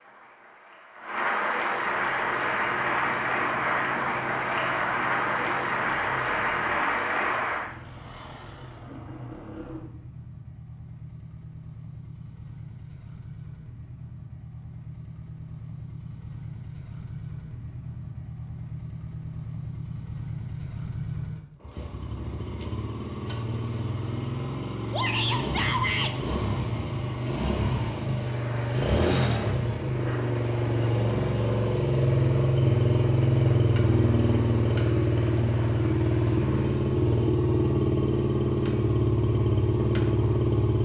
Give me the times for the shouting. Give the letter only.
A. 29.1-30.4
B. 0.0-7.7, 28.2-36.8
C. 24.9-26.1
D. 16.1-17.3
C.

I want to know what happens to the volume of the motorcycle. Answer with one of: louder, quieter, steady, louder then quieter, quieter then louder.
louder.